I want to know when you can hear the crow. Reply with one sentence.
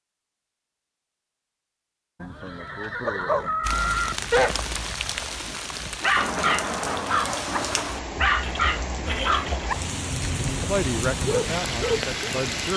The crow can't be heard in this clip.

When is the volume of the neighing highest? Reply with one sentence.
The volume of the neighing peaks at 4 seconds.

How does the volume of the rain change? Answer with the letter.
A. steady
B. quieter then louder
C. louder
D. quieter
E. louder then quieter
A.